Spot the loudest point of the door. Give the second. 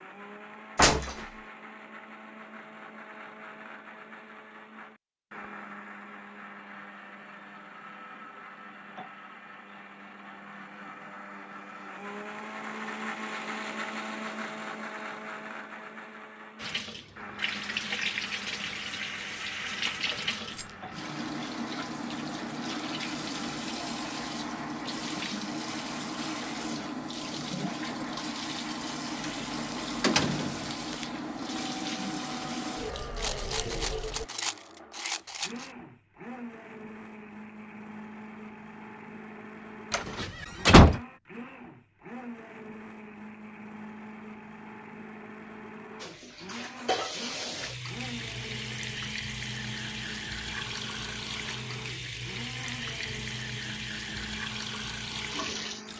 41 s.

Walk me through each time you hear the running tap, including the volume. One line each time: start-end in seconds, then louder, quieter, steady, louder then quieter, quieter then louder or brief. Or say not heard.
16.6-34.3 steady
46.0-55.9 steady.